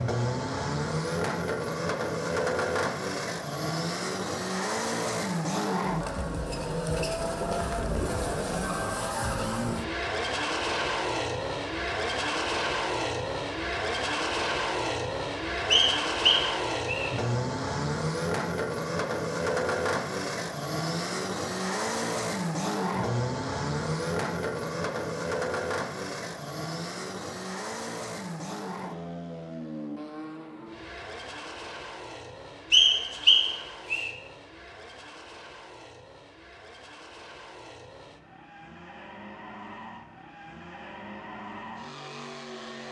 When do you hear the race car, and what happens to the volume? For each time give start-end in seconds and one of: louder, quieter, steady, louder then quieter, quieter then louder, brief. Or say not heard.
0.0-42.8 quieter.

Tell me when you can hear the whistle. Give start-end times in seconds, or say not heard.
15.7-17.1, 32.7-34.1.